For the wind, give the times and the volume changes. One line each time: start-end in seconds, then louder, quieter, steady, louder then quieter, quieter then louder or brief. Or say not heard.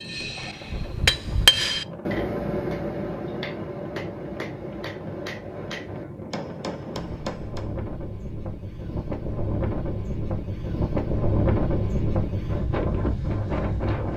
0.0-14.1 louder.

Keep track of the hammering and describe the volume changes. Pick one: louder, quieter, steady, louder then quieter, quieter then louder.
quieter.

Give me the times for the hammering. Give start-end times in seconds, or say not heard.
0.0-7.8.